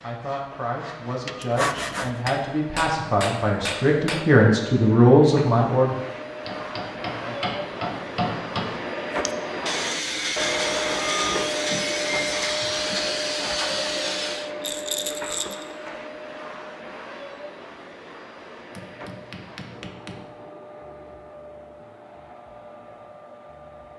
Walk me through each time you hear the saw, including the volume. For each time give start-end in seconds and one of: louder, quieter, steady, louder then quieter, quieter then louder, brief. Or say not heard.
0.0-2.2 brief
9.2-14.5 steady.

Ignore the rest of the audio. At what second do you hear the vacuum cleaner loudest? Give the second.
11 s.